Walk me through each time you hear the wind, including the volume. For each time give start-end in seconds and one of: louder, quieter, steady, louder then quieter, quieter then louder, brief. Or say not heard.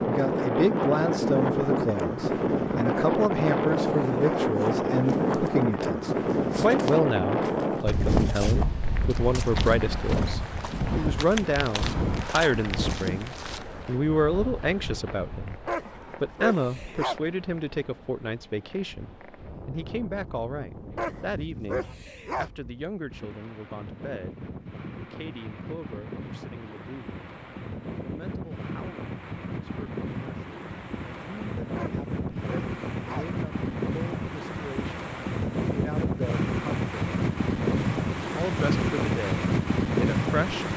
0.0-40.7 quieter then louder.